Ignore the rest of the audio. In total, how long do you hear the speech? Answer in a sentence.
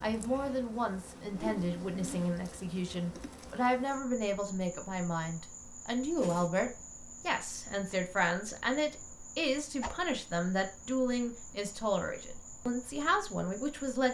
The speech can be heard for 14 seconds in total.